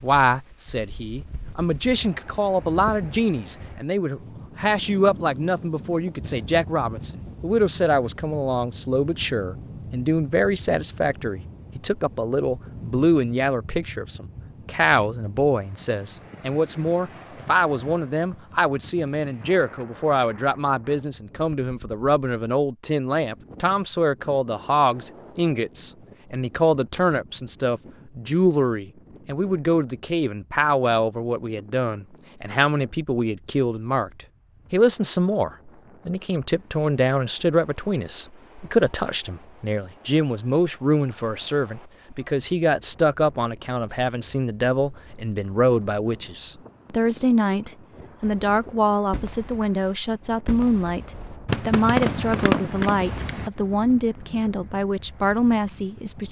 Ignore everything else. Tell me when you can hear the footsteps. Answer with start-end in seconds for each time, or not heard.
not heard.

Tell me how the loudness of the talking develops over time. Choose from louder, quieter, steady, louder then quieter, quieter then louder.
steady.